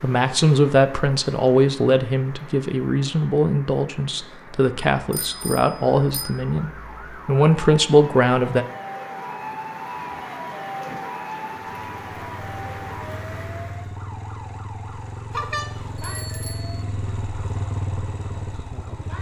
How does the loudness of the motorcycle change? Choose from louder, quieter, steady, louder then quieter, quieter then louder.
louder.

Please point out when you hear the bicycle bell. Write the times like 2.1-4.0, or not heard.
5.1-6.3, 15.3-16.9.